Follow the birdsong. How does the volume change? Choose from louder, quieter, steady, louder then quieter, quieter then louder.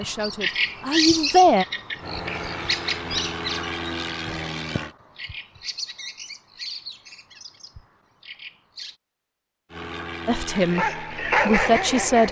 quieter.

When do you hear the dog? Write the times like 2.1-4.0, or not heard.
10.6-12.2.